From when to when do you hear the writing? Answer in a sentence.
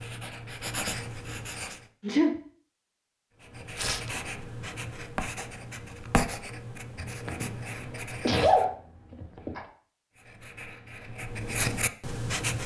The writing can be heard from 0.0 to 1.9 s, from 3.4 to 8.7 s and from 10.2 to 12.6 s.